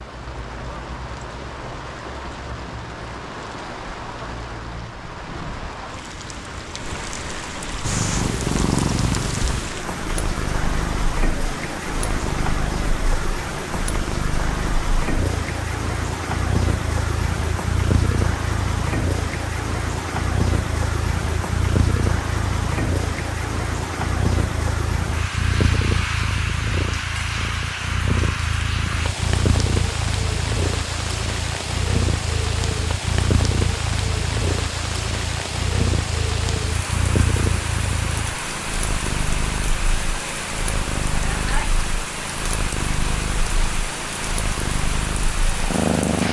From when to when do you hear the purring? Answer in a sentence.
The purring can be heard from 7.8 to 46.2 s.